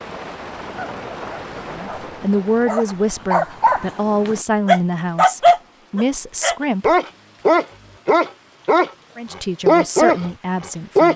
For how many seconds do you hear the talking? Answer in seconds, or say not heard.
7 s.